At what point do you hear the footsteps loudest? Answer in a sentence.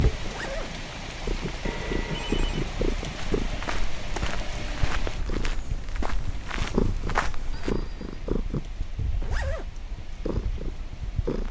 The loudest moment of the footsteps is at 7 seconds.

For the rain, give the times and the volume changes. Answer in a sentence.
The rain can be heard from 0.0 to 11.4 s, getting quieter.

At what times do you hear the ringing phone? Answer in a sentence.
The ringing phone can be heard from 1.6 to 2.6 s and from 7.5 to 8.4 s.